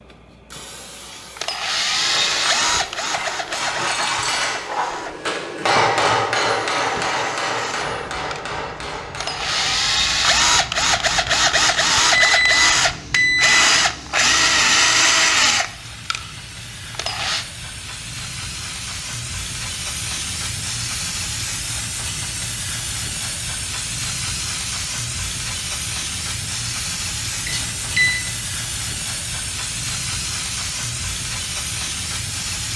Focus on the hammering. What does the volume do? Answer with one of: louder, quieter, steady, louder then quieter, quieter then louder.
louder then quieter.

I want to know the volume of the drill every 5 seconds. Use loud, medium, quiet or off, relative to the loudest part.
medium, medium, loud, loud, off, off, off.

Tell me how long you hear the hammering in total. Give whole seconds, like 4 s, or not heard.
8 s.